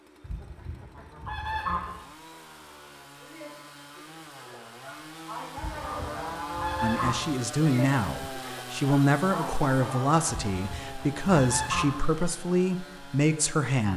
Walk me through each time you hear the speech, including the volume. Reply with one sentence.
The speech can be heard from 6.8 to 13.9 s, at a steady volume.